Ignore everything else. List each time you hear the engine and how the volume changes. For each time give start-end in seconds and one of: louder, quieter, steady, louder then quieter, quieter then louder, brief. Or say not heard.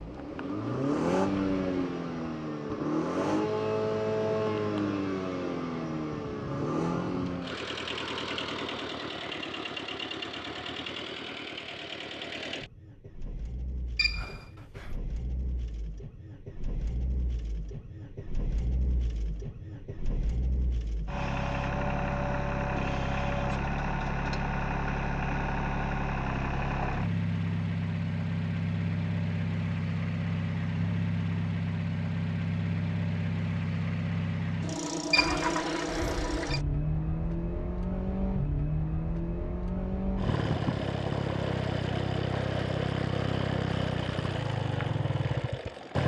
0.0-46.0 quieter then louder.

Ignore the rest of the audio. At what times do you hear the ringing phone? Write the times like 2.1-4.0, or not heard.
13.9-14.9, 35.1-36.6.